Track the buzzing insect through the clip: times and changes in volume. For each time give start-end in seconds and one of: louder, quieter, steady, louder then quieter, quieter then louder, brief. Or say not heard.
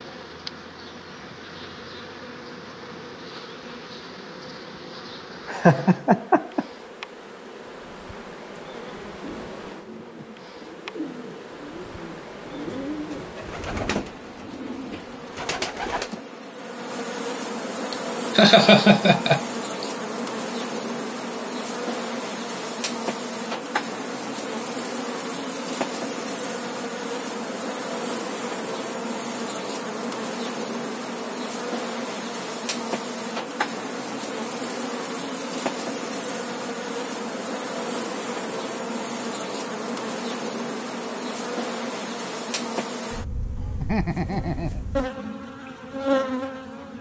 0.0-46.9 louder.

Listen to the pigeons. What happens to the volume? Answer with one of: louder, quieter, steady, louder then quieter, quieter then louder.
louder.